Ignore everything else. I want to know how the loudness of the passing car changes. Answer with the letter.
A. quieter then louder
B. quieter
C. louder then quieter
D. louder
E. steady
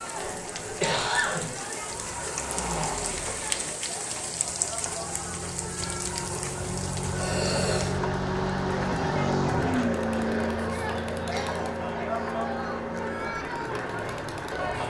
C.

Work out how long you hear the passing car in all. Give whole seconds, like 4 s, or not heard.
13 s.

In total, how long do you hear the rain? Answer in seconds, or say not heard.
15 s.